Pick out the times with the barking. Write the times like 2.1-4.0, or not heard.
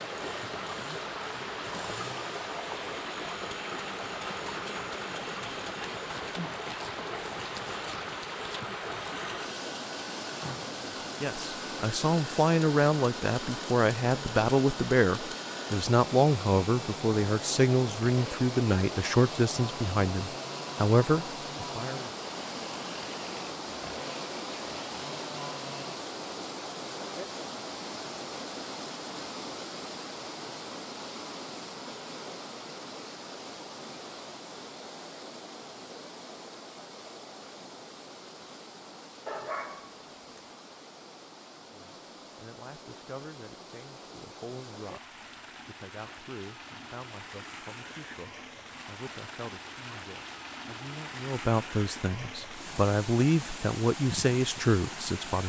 39.2-40.5.